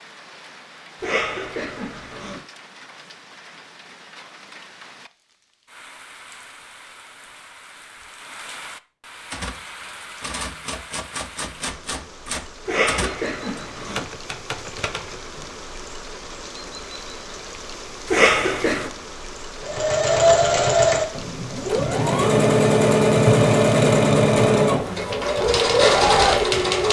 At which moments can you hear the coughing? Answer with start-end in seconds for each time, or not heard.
1.0-2.4, 12.7-14.1, 18.1-18.9.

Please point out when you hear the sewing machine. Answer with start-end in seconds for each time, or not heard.
19.6-26.8.